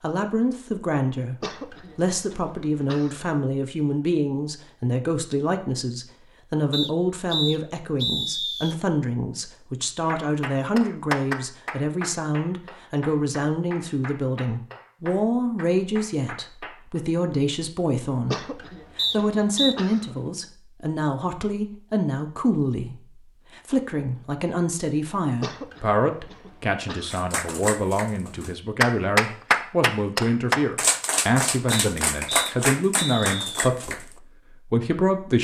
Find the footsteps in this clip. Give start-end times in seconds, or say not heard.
not heard.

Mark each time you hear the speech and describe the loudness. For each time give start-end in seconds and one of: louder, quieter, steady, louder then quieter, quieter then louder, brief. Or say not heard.
0.0-35.3 steady.